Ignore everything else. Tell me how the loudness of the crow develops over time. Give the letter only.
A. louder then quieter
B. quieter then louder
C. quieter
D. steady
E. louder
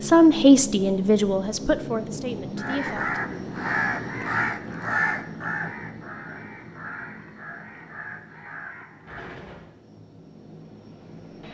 C.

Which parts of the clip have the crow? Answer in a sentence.
You can hear the crow from 2.5 to 9.3 s.